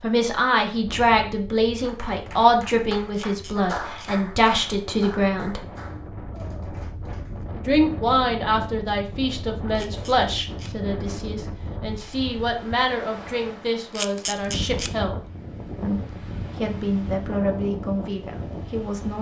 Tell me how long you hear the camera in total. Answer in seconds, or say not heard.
3 s.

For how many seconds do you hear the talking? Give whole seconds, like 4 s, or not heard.
17 s.